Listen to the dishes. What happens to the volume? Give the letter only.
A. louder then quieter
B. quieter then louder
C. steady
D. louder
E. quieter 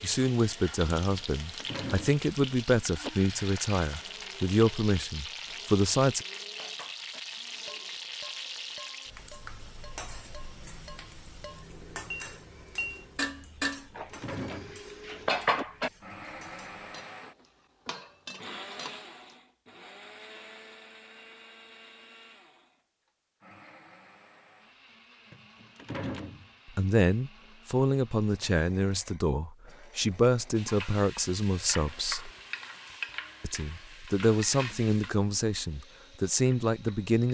D.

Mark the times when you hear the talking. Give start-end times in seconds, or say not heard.
0.0-6.2, 26.8-32.3, 33.4-37.2.